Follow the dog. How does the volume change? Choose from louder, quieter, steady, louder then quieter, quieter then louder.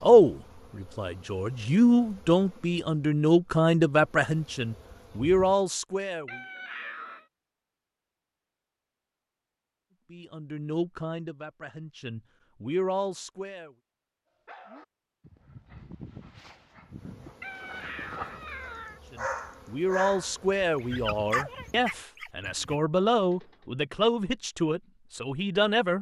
louder then quieter.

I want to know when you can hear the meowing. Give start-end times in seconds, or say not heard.
6.2-7.2, 17.4-19.0.